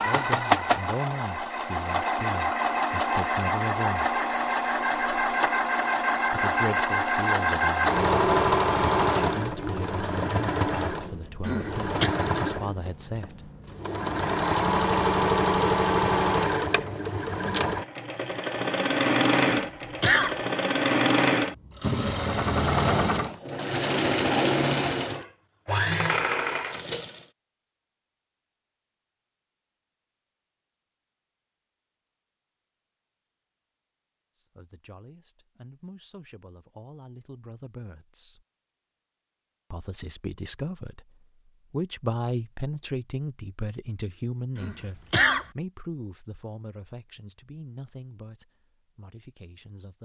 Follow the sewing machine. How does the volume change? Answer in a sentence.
The volume of the sewing machine stays about the same.